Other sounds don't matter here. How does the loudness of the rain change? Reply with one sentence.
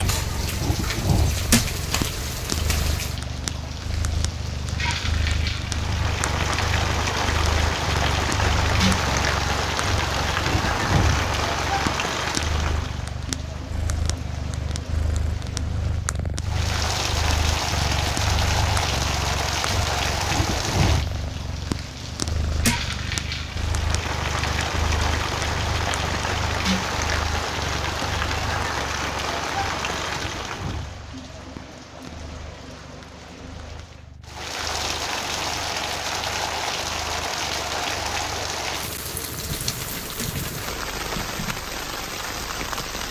The volume of the rain stays about the same.